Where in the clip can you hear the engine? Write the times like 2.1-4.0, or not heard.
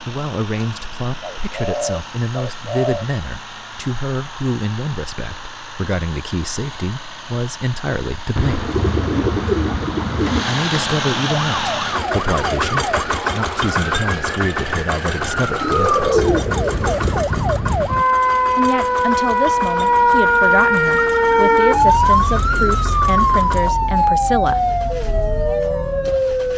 0.0-26.5.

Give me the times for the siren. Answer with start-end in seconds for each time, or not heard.
11.5-26.5.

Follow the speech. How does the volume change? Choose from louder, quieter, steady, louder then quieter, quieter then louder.
steady.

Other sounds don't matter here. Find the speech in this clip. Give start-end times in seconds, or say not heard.
0.0-8.7, 10.4-16.2, 18.6-24.7.